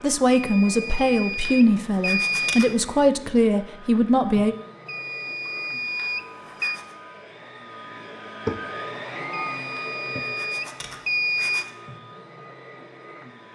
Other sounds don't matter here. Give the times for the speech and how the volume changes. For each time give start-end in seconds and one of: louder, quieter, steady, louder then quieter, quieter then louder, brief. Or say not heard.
0.0-4.5 steady.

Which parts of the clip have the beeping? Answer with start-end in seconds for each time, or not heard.
0.3-2.8, 4.8-6.8, 9.3-11.7.